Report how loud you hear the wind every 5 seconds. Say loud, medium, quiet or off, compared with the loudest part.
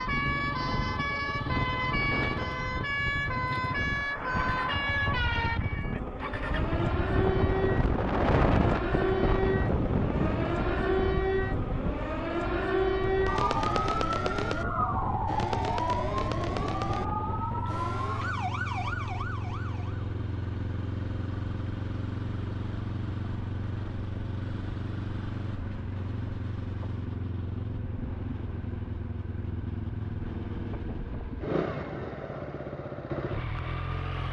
medium, loud, medium, medium, off, off, off.